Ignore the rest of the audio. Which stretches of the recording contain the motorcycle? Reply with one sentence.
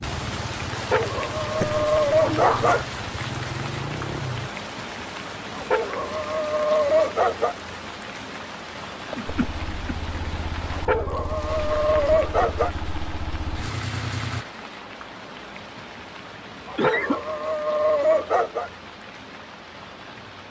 The motorcycle can be heard from 0.0 to 4.5 s and from 9.2 to 14.4 s.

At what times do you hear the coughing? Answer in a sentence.
You can hear the coughing from 1.6 to 2.9 s, from 9.1 to 9.9 s and from 16.8 to 17.2 s.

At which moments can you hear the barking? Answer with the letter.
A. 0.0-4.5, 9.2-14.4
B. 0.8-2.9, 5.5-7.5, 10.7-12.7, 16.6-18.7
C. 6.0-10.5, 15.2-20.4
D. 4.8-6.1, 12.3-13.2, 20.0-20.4
B.